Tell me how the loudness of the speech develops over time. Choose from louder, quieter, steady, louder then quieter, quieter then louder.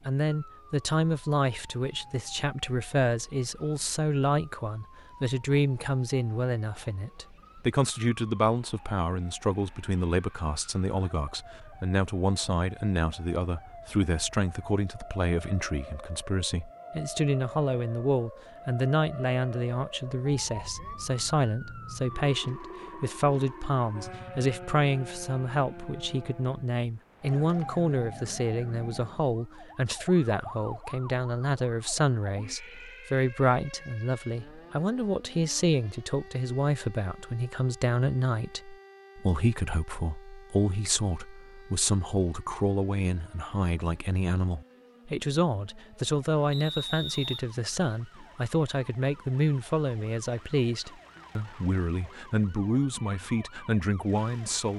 steady.